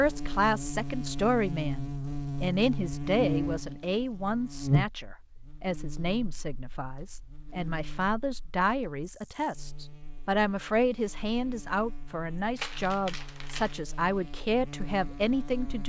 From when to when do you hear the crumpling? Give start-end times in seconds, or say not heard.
3.5-4.0, 12.6-13.8.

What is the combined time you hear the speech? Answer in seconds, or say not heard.
16 s.